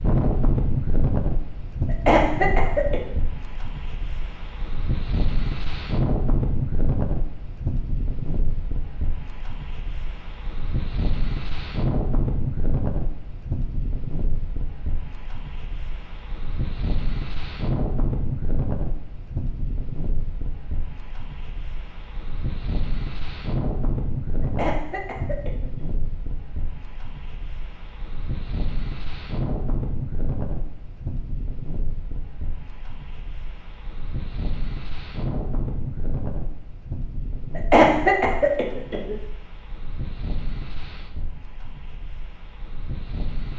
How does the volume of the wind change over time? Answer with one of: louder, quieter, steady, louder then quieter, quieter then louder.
quieter.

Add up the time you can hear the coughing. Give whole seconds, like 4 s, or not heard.
4 s.